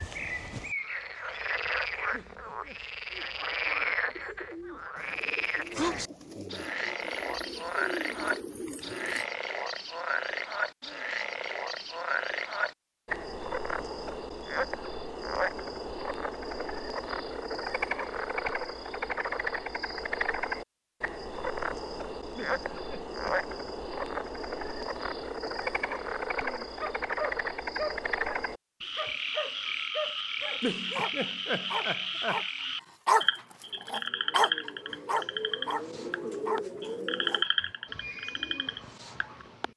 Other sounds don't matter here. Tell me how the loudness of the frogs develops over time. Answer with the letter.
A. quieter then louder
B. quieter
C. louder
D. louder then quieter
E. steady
E.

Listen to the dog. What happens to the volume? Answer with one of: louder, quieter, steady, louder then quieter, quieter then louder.
louder then quieter.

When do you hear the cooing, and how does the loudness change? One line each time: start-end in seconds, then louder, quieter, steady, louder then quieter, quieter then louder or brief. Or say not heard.
3.1-9.2 louder
33.6-39.7 louder then quieter.